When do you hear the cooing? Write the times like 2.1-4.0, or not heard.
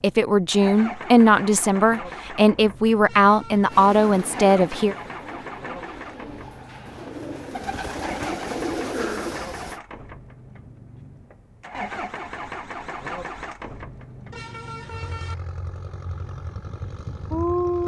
3.6-9.8.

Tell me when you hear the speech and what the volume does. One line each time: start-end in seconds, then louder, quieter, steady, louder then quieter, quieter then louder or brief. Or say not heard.
0.0-5.0 steady.